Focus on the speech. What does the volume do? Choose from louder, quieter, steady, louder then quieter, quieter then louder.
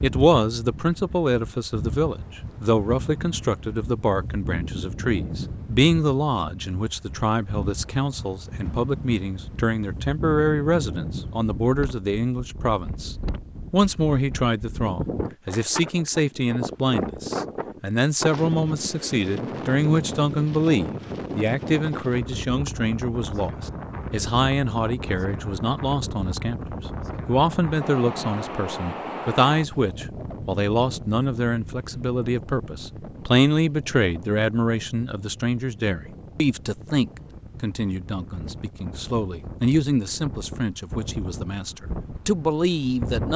steady.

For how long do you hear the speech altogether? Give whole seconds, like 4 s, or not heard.
43 s.